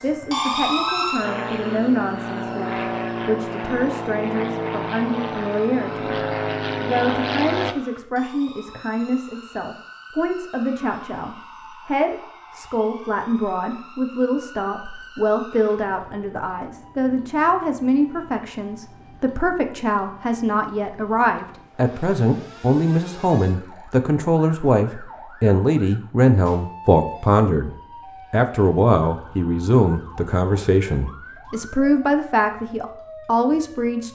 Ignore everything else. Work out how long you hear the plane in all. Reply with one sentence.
You can hear the plane for 8 seconds altogether.